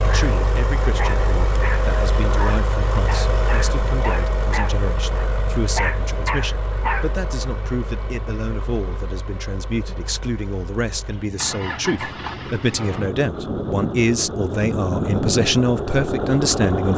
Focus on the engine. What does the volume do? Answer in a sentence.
The volume of the engine goes down, then up.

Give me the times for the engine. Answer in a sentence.
You can hear the engine from 0.0 to 16.9 s.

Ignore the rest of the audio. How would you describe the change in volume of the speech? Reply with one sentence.
The loudness of the speech goes up.